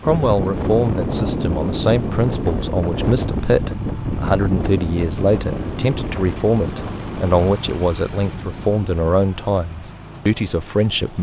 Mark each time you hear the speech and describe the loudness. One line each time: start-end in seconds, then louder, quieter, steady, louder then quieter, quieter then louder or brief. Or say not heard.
0.0-11.1 steady.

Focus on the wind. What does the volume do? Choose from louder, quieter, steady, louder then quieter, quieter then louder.
quieter.